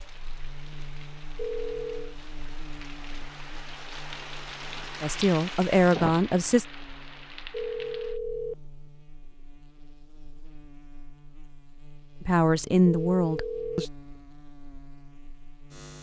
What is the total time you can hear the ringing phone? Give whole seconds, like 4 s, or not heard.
3 s.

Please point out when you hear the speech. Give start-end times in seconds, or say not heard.
5.0-6.7, 12.2-13.8.